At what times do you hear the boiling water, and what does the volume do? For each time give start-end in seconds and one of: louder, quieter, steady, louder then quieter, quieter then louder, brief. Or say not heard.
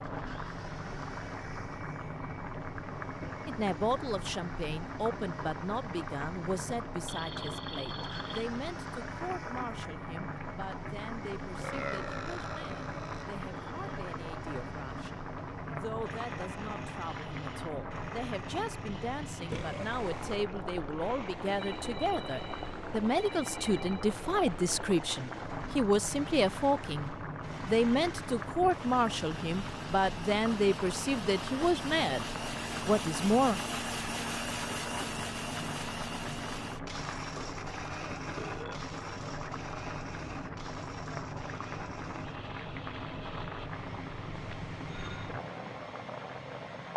0.0-46.9 steady.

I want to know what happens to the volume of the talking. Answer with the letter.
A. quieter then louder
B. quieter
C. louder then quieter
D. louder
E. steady
A.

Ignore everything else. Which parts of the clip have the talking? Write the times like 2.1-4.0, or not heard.
3.5-33.6.